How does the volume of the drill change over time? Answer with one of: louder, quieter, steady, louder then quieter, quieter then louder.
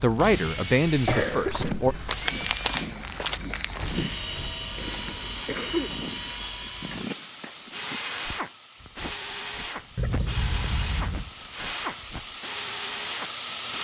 steady.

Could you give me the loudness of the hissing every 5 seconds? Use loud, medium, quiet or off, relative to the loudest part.
loud, medium, loud.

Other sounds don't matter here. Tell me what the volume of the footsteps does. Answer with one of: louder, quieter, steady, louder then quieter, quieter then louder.
quieter.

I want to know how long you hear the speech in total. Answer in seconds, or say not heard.
2 s.